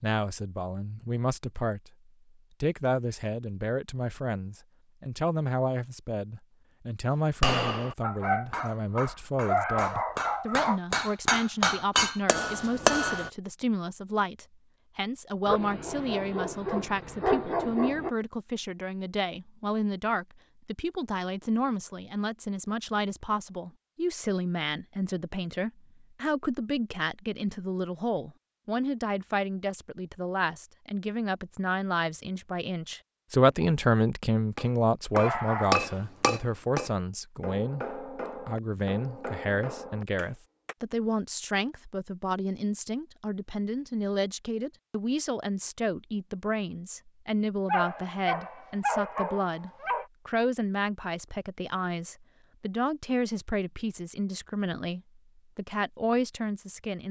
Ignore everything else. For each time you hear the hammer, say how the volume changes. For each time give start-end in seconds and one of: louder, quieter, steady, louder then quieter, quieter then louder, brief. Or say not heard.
7.4-13.3 louder
34.5-40.8 quieter.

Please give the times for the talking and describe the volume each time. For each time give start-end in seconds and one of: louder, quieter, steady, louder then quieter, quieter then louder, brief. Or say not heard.
0.0-1.9 brief
2.6-57.0 steady.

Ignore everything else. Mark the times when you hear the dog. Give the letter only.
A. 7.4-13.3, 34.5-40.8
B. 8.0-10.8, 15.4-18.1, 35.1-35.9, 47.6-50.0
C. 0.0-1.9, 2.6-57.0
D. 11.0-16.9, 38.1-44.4
B.